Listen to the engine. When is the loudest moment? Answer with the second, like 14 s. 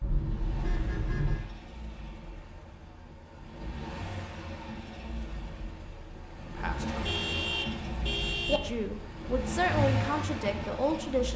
10 s.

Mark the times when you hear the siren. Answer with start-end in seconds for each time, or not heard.
not heard.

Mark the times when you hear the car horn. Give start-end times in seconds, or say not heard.
0.0-1.5, 7.0-8.6.